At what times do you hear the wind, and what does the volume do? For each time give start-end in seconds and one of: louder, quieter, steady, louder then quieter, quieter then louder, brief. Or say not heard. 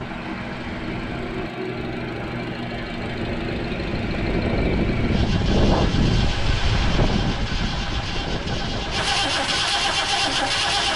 0.0-10.7 louder then quieter.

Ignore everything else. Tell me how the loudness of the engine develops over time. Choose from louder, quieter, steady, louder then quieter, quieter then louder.
louder.